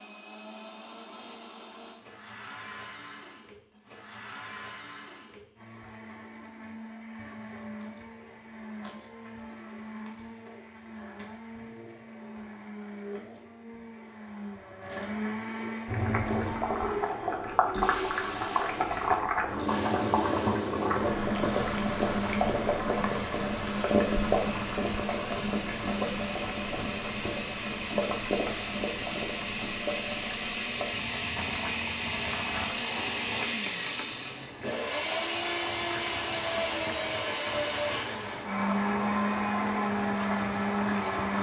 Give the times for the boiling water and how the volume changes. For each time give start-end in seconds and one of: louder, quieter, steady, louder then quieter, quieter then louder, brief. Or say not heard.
15.8-41.3 quieter.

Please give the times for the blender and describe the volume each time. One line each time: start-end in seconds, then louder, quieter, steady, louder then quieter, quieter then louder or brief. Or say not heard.
0.0-41.3 louder.